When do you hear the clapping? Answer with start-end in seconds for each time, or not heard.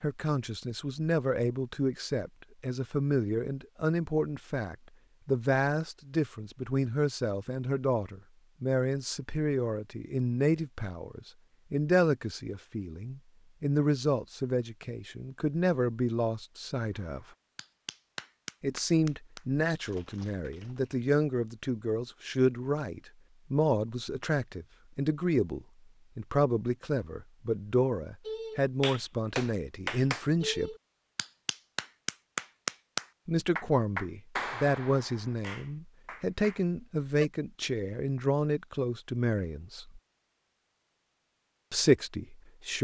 16.9-20.9, 28.2-37.2.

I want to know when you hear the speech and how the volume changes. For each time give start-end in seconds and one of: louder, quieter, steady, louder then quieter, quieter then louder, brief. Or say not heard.
0.0-17.2 steady
18.6-30.7 steady
33.2-40.0 steady
41.7-42.8 brief.